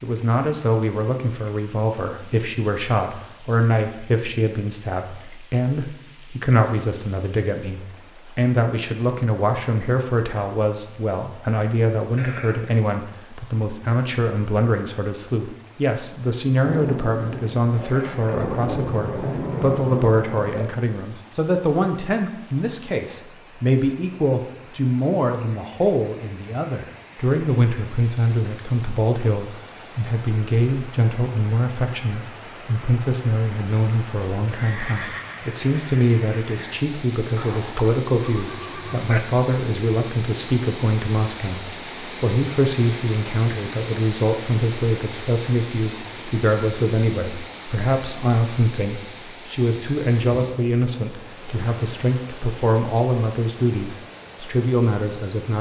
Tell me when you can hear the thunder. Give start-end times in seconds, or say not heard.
16.6-20.7.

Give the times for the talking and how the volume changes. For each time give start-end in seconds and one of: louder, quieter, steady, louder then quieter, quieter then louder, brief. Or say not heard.
0.0-55.5 steady.